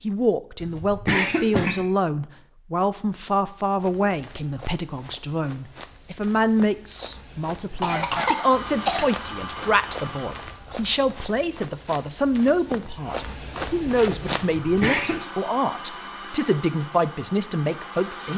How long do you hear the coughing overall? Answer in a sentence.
You can hear the coughing for 3 seconds altogether.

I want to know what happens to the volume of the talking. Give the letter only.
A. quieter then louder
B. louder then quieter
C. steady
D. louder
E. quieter
C.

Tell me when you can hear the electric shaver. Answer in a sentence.
The electric shaver can't be heard in this clip.